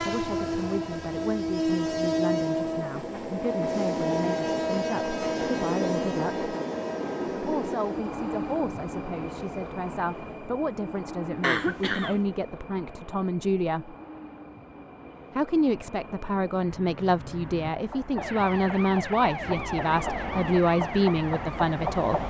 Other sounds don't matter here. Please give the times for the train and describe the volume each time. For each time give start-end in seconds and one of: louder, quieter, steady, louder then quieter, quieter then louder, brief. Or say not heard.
0.0-22.2 quieter then louder.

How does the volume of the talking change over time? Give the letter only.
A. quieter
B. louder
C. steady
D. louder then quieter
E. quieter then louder
B.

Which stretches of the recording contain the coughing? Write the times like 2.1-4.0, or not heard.
11.4-12.2.